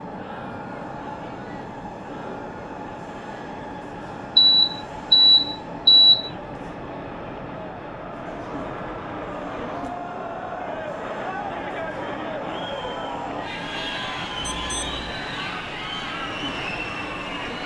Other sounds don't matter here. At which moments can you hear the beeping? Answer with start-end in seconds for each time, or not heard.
4.3-6.3, 14.4-14.9.